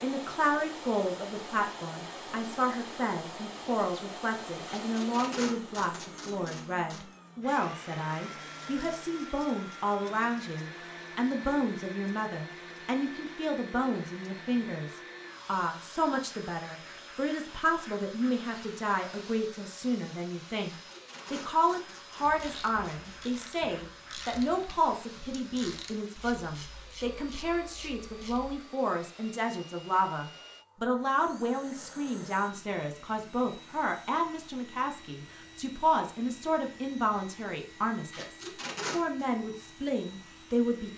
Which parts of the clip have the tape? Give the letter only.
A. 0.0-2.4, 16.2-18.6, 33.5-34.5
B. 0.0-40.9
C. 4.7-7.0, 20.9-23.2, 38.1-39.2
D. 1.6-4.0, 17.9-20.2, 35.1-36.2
C.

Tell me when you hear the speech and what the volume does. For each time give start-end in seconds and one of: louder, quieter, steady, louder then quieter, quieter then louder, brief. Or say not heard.
0.0-40.9 steady.